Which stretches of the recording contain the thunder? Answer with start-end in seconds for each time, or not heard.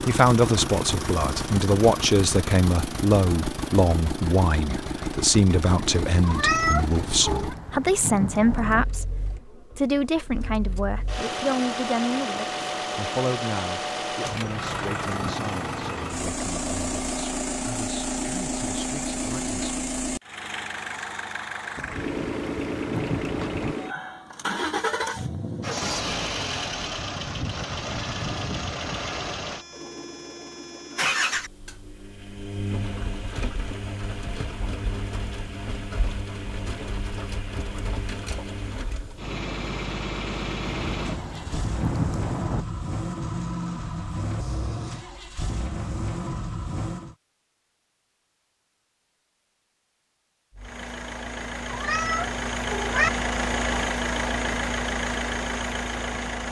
6.8-8.8, 21.8-23.8, 40.6-42.6.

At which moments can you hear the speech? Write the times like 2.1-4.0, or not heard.
0.1-19.8.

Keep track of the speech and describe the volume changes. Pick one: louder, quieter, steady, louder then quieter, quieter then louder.
quieter.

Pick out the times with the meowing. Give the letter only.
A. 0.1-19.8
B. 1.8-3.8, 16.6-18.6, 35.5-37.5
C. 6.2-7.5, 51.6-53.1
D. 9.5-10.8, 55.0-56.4
C.